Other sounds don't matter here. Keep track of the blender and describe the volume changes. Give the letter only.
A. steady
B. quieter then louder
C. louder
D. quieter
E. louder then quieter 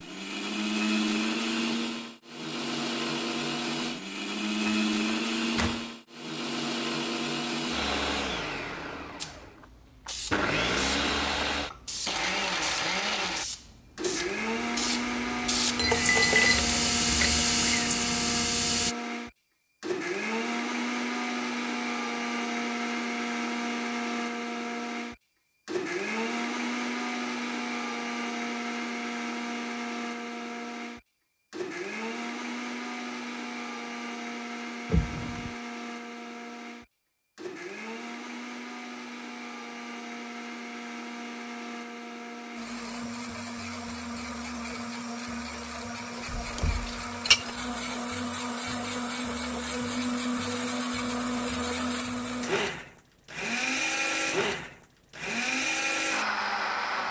B.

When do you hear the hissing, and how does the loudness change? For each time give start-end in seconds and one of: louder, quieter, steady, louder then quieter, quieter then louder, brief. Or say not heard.
9.2-18.9 louder.